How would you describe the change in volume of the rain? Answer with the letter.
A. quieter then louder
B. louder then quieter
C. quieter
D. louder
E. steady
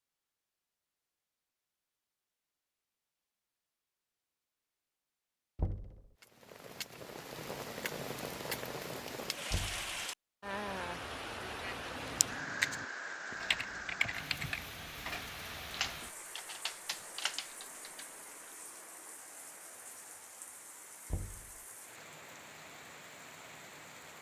C.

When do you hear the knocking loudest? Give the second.
6 s.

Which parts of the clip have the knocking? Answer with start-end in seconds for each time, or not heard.
5.5-6.0, 9.5-10.0, 21.1-21.6.